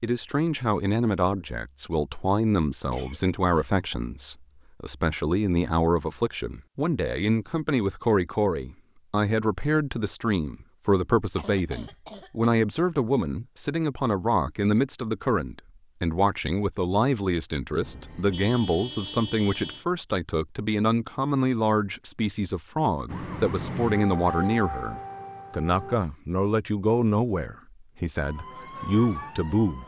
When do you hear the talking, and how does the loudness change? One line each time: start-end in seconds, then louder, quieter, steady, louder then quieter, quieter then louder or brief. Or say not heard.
0.0-29.8 steady.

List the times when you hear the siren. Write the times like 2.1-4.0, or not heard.
23.1-26.0, 28.2-29.8.